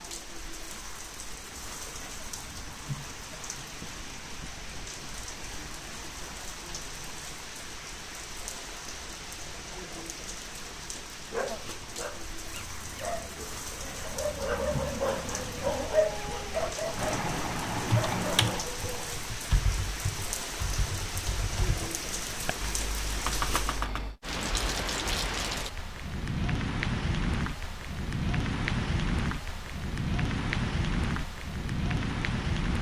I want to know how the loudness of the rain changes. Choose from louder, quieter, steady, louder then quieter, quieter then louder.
louder.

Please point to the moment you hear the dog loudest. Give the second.
16 s.